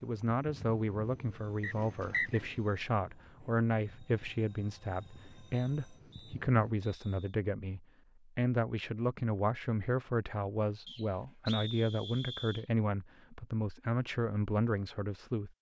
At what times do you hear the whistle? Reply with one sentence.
The whistle can be heard from 1.6 to 2.4 s, from 5.5 to 7.4 s and from 10.8 to 12.7 s.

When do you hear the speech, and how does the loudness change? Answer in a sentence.
You can hear the speech from 0.0 to 15.5 s, at a steady volume.